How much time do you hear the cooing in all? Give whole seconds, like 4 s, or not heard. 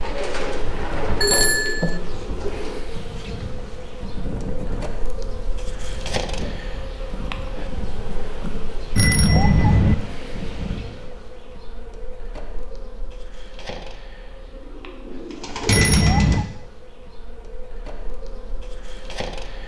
5 s.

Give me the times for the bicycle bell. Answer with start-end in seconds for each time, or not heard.
1.2-2.0, 8.9-9.9, 15.7-16.5.